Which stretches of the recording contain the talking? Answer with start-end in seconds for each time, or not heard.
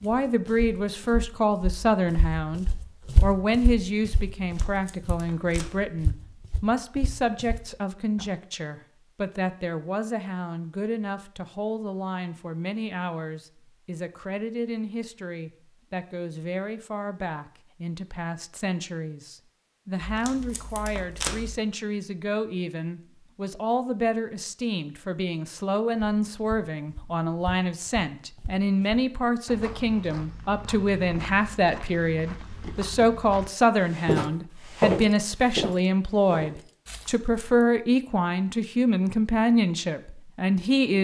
0.0-41.0.